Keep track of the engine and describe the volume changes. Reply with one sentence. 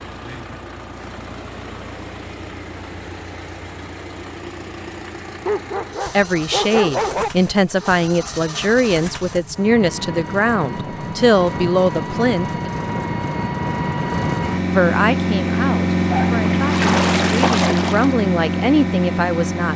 The loudness of the engine goes up.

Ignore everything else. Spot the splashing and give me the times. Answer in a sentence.
The splashing can be heard from 16.5 to 18.1 s.